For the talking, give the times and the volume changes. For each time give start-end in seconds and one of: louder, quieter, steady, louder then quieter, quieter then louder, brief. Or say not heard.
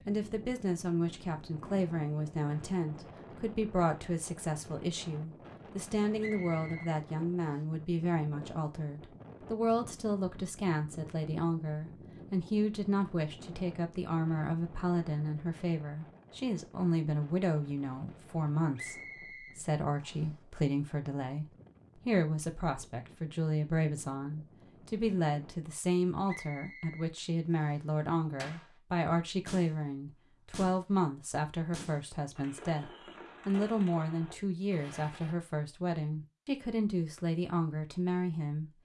0.1-38.7 steady.